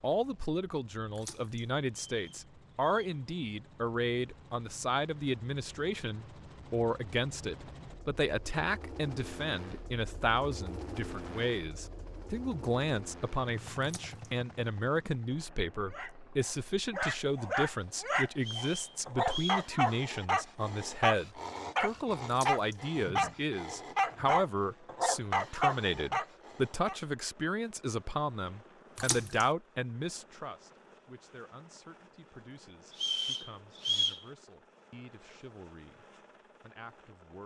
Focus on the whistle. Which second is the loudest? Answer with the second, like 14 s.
34 s.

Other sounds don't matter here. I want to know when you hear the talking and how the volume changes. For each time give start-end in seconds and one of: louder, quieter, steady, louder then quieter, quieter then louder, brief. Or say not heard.
0.0-37.4 quieter.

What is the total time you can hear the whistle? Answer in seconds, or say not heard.
4 s.